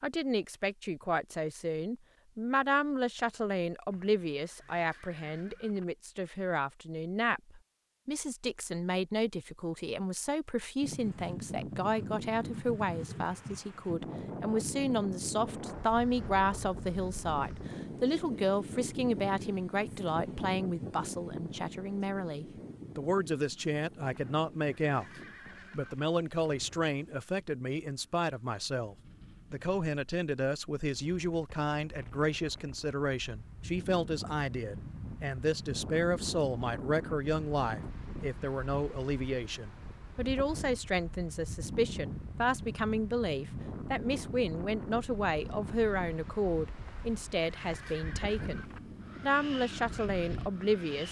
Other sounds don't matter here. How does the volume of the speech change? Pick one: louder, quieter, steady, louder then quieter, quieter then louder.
steady.